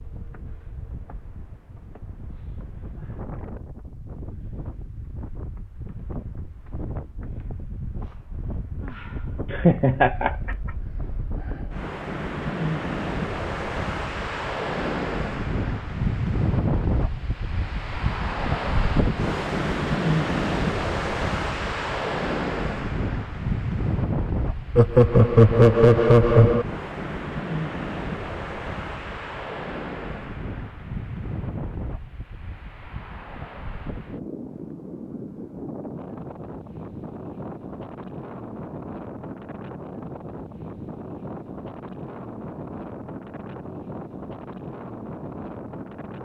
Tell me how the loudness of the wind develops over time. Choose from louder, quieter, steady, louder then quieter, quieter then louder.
louder then quieter.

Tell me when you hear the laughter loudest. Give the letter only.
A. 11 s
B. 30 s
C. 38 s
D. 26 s
D.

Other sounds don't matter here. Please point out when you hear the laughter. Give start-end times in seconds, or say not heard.
9.5-10.6, 24.8-26.6.